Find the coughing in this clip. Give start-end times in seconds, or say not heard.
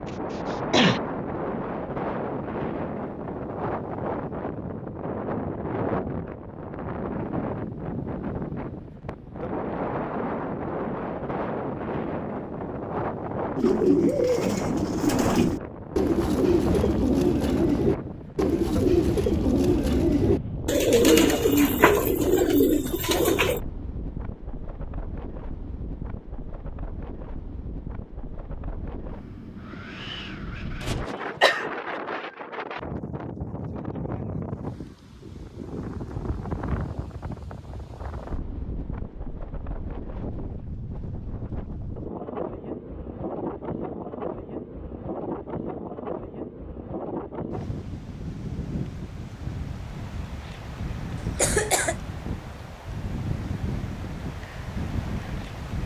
0.5-1.0, 30.8-32.0, 51.4-52.0.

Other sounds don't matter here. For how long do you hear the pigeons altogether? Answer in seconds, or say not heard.
10 s.